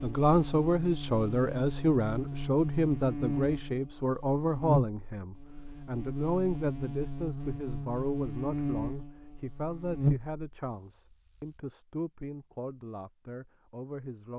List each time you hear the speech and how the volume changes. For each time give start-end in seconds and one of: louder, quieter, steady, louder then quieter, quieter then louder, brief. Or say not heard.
0.0-14.3 quieter.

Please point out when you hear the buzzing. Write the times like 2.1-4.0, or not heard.
0.0-11.6.